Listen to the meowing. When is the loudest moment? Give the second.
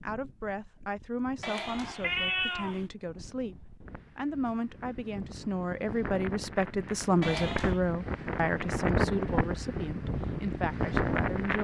2 s.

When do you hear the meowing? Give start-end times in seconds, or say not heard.
1.4-2.9, 7.2-7.8.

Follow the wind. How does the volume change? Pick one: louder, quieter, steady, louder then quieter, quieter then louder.
louder.